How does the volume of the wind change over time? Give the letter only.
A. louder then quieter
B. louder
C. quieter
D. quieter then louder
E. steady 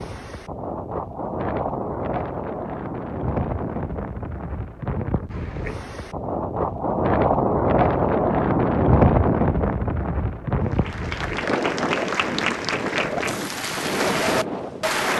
A.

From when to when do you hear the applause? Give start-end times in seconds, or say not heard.
10.6-15.1.